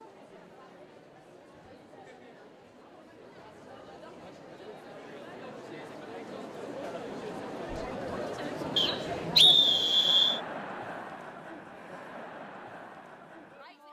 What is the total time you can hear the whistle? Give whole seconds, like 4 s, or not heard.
2 s.